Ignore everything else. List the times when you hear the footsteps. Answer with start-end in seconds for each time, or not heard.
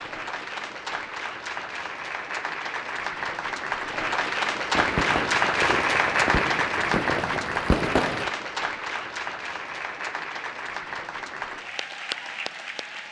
not heard.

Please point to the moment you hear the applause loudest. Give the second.
6 s.